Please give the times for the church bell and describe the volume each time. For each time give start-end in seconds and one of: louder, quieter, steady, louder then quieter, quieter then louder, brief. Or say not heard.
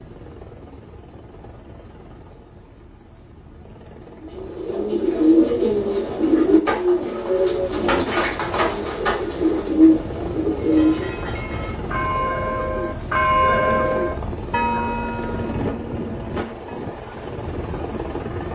10.6-16.8 louder then quieter.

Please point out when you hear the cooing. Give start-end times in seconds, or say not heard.
4.2-11.2.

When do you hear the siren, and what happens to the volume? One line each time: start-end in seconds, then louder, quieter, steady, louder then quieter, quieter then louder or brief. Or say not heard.
not heard.